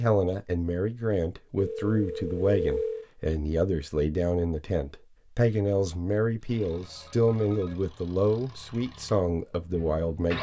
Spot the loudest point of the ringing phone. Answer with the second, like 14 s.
3 s.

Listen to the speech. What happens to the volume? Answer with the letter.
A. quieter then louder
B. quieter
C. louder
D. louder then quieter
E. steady
E.